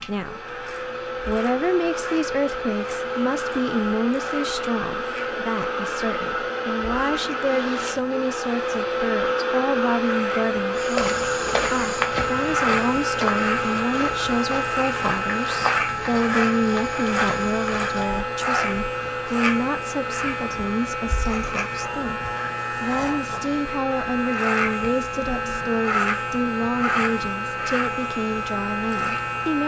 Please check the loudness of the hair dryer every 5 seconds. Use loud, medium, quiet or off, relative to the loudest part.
loud, loud, loud, medium, medium, medium.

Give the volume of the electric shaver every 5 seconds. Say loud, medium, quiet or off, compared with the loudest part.
quiet, quiet, loud, loud, loud, loud.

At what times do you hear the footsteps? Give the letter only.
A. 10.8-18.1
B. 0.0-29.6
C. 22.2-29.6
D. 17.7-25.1
A.